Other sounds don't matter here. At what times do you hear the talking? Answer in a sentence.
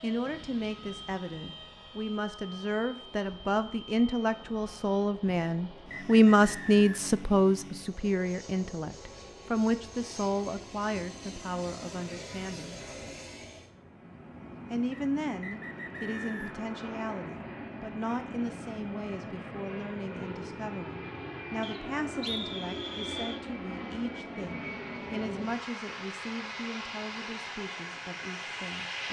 You can hear the talking from 0.0 to 12.8 s and from 14.7 to 29.0 s.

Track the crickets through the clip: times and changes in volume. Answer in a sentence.
The crickets can't be heard in this clip.